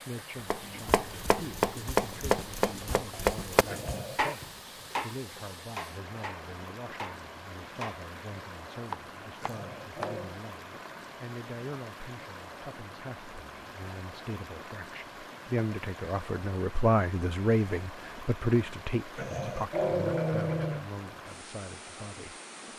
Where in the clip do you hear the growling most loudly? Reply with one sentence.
The volume of the growling peaks at 20 seconds.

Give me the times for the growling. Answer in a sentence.
You can hear the growling from 3.7 to 4.4 s, from 9.4 to 10.4 s and from 19.1 to 20.9 s.